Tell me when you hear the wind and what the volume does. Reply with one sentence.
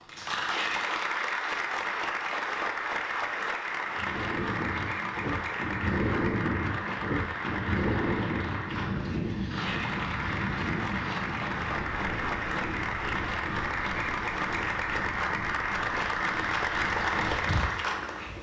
You can hear the wind from 3.9 to 18.3 s, getting quieter.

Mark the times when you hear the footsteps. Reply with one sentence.
The footsteps can't be heard in this clip.